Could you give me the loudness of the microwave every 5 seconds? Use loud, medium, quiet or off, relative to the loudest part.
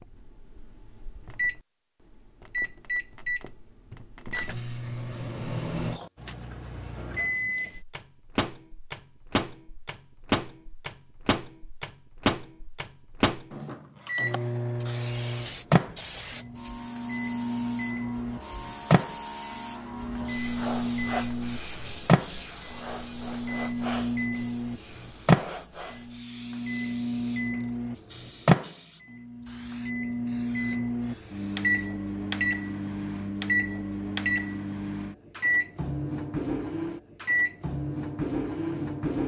medium, medium, loud, loud, loud, loud, loud, loud.